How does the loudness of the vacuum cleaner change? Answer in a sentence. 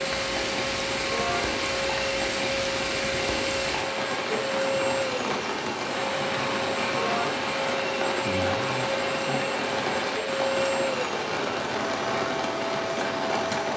The loudness of the vacuum cleaner stays about the same.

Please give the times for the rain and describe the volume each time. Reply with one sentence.
The rain can be heard from 0.0 to 13.7 s, at a steady volume.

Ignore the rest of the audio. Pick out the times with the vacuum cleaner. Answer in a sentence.
The vacuum cleaner can be heard from 0.0 to 13.7 s.